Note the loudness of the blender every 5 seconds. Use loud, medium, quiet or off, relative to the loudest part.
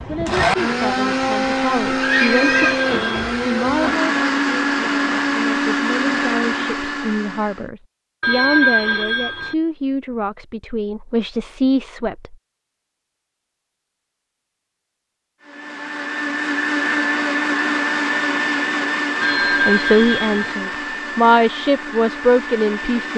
loud, loud, off, loud, medium.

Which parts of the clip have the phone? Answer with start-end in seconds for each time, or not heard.
2.1-3.2, 8.2-9.6, 19.2-20.6.